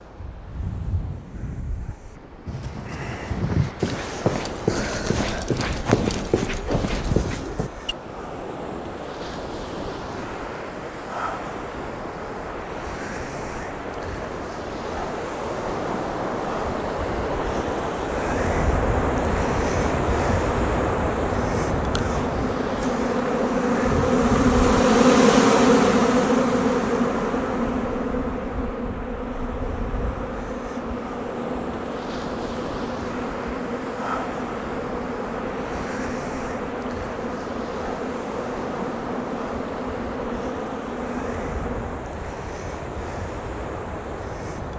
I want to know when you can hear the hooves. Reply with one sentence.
The hooves can be heard from 2.5 to 8.0 s.